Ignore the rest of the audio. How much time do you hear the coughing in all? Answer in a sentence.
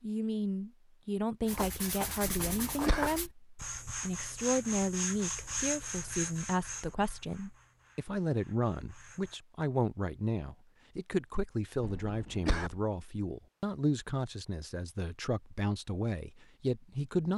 You can hear the coughing for 2 seconds altogether.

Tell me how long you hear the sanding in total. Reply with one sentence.
The sanding can be heard for 8 seconds in total.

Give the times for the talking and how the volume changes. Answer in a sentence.
The talking can be heard from 0.0 to 17.3 s, at a steady volume.